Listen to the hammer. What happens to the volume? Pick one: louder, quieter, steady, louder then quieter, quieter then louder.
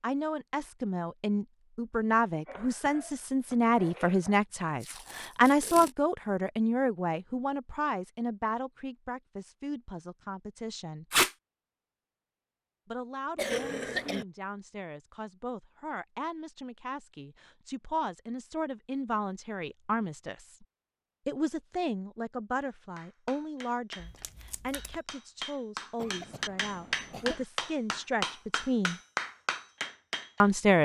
louder.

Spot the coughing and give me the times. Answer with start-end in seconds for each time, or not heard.
2.5-4.4, 13.3-14.2, 25.9-27.4.